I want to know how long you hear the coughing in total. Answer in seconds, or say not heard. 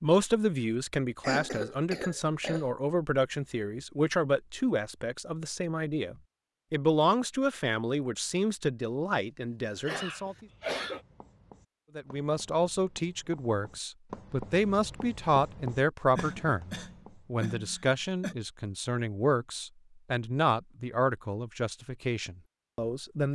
5 s.